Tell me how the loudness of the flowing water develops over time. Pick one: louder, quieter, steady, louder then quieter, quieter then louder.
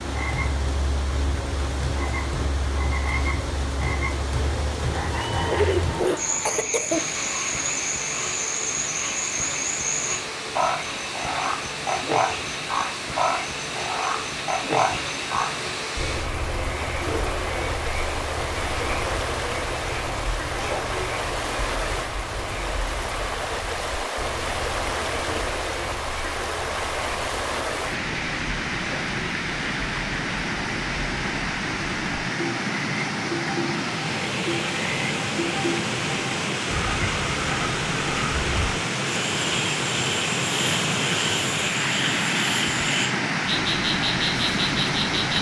louder.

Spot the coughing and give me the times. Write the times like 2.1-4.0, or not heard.
5.1-7.0.